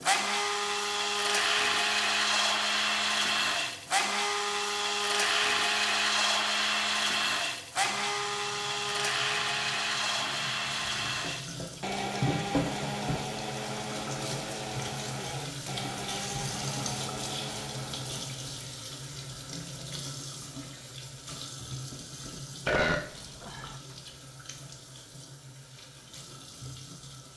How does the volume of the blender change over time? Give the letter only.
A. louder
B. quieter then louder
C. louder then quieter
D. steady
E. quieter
E.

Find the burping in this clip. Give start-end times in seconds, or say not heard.
22.6-23.8.